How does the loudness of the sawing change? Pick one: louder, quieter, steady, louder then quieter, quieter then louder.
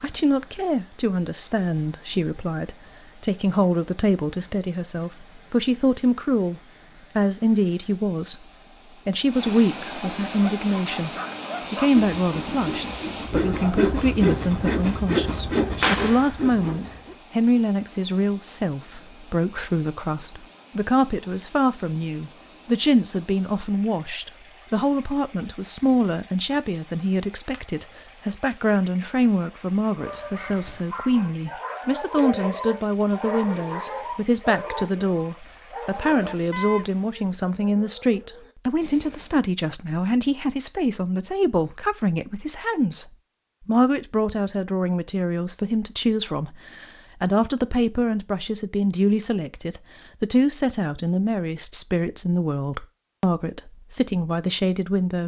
louder.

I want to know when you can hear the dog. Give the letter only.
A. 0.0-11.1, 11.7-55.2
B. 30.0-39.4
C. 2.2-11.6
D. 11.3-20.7
B.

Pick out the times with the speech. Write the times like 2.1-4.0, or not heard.
0.0-11.1, 11.7-55.2.